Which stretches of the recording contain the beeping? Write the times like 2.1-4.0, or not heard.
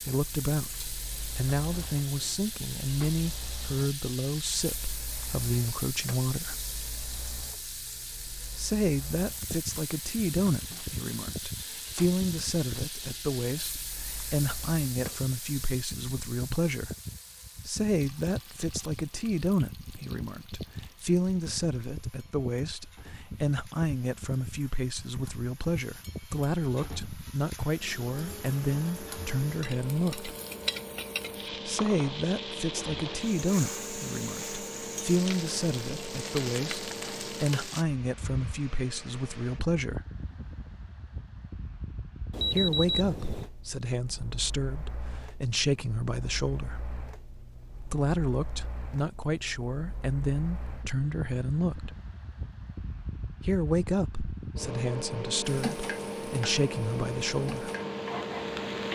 42.3-43.5.